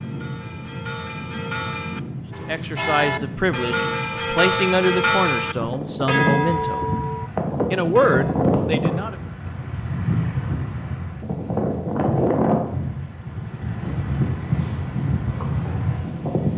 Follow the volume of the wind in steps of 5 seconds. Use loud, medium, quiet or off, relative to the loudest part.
medium, loud, loud, loud.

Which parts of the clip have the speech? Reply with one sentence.
You can hear the speech from 2.5 to 6.9 s and from 7.7 to 9.2 s.